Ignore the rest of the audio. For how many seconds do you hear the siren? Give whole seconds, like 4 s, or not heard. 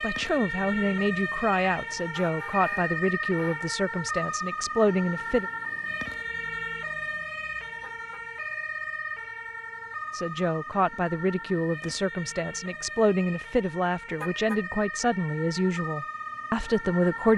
17 s.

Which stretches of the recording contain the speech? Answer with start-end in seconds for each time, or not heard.
0.0-5.5, 10.2-17.3.